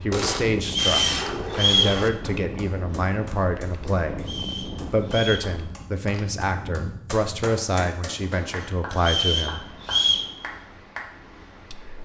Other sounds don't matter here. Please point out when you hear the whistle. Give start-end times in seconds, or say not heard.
0.7-2.0, 4.2-5.5, 8.9-10.3.